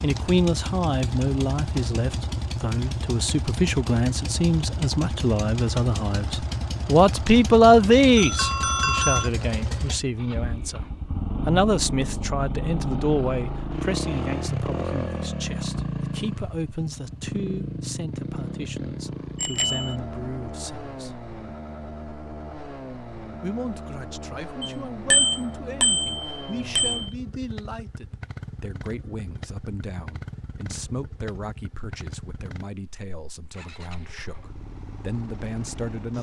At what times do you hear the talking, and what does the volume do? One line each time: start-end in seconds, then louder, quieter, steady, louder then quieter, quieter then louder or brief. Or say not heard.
0.0-10.8 louder then quieter
11.4-21.1 quieter
23.4-36.1 steady.